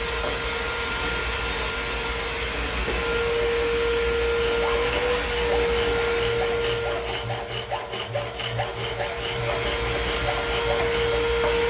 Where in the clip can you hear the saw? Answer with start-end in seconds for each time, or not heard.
4.3-11.3.